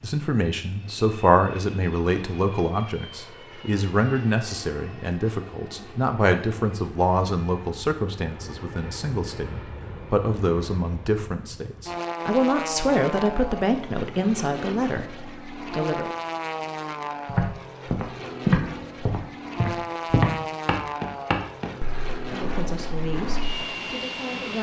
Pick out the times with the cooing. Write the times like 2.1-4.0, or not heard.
not heard.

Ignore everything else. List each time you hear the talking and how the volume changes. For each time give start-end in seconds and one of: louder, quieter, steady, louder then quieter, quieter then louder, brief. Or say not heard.
0.0-16.1 steady
22.3-24.5 brief.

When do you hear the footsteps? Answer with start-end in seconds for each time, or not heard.
17.2-23.6.